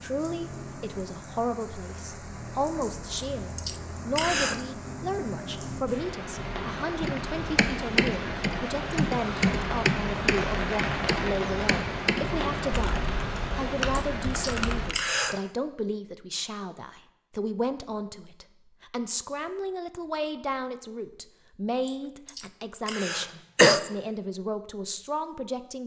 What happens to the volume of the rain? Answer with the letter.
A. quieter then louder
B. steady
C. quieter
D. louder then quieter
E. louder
E.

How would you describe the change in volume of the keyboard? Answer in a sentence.
The loudness of the keyboard goes down.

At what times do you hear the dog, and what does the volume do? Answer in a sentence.
The dog can't be heard in this clip.